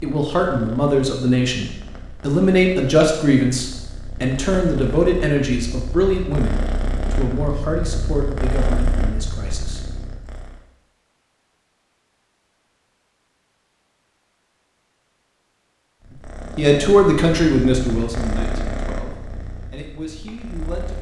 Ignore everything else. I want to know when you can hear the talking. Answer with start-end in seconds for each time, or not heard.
0.0-9.8, 16.1-20.9.